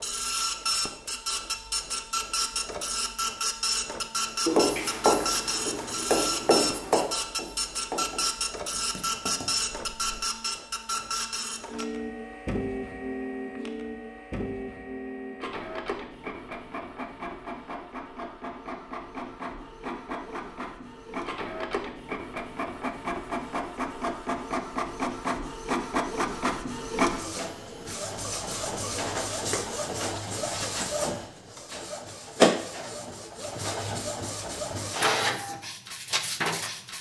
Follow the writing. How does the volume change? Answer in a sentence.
The loudness of the writing goes down.